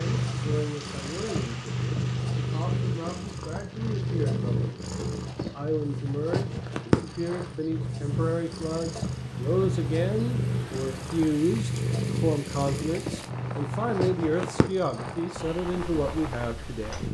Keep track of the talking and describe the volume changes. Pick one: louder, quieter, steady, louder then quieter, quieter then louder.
louder.